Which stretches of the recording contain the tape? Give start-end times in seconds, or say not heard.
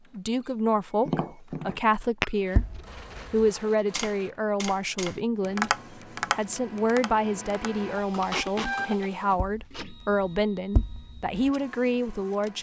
2.5-4.0, 8.2-8.8.